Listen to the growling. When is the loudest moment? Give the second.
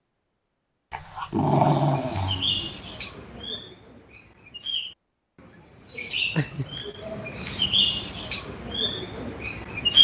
2 s.